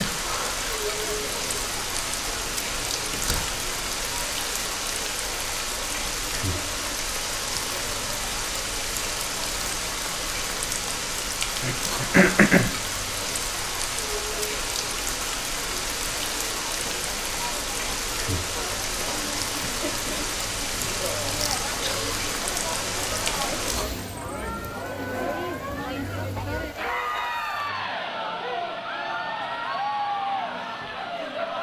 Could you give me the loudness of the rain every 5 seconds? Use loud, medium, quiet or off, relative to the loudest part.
loud, loud, loud, loud, loud, quiet, quiet.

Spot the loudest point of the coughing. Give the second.
12 s.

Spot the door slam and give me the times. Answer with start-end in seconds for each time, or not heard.
3.1-3.6.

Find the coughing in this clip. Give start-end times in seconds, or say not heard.
11.6-12.8, 21.4-22.1.